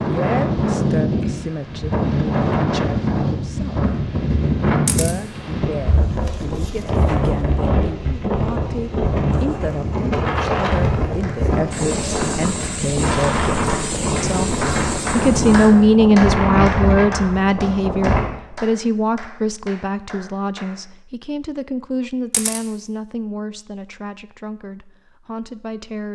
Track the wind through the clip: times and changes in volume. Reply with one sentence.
You can hear the wind from 0.0 to 18.2 s, at a steady volume.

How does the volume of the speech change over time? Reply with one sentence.
The volume of the speech goes up, then down.